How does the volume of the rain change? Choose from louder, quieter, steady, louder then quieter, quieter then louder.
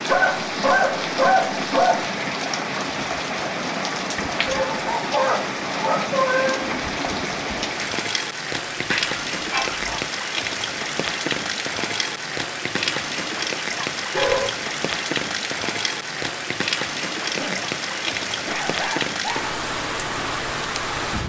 steady.